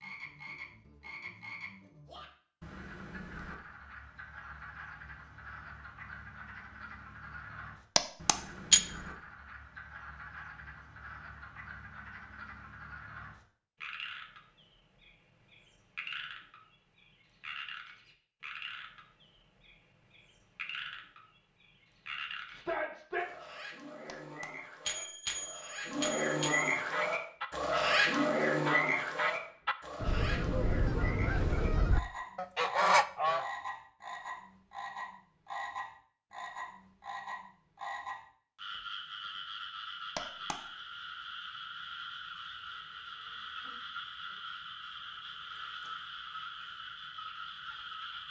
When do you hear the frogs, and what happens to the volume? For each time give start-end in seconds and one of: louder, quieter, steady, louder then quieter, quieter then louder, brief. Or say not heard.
0.0-48.2 louder then quieter.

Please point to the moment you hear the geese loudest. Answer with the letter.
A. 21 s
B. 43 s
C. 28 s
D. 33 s
D.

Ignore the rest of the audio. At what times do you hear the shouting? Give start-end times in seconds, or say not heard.
22.5-23.2.